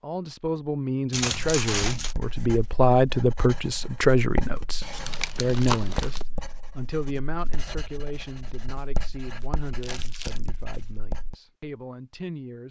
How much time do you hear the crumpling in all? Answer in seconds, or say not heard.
3 s.